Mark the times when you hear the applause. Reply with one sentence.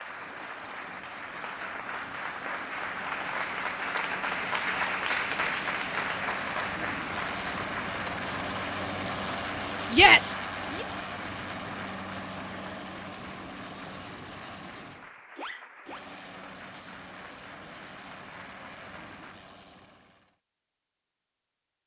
You can hear the applause from 0.0 to 19.4 s.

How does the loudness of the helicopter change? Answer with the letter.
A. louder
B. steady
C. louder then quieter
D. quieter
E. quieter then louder
C.